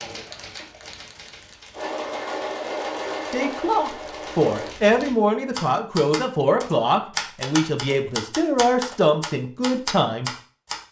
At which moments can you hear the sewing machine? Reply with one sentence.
The sewing machine can be heard from 1.7 to 4.8 s.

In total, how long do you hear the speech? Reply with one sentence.
You can hear the speech for 7 seconds altogether.